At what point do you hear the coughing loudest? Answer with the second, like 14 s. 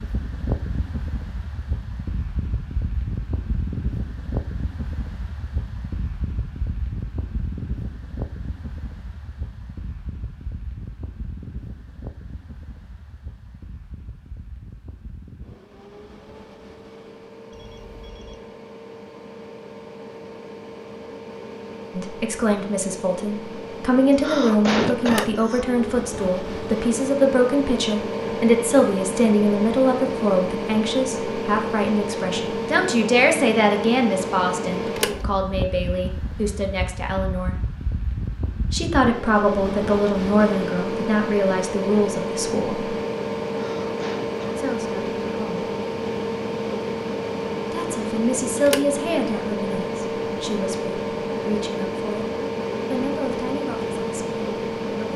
25 s.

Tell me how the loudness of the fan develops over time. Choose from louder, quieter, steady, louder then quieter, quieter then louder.
quieter then louder.